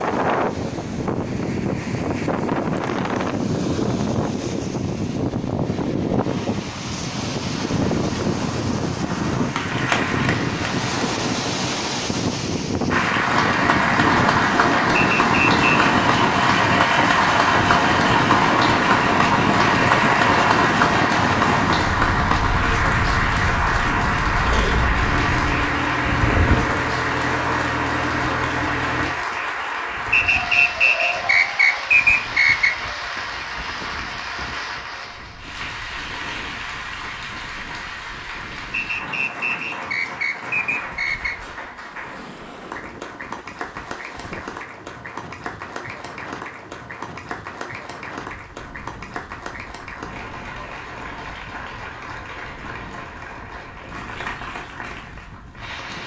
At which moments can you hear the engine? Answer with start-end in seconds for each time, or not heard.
15.7-29.1.